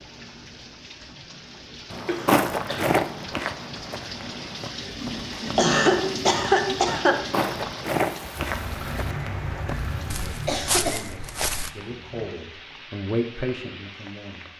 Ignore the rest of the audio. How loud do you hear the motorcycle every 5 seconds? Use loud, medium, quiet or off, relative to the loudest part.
off, loud, medium.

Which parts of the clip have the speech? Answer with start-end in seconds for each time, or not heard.
10.1-14.5.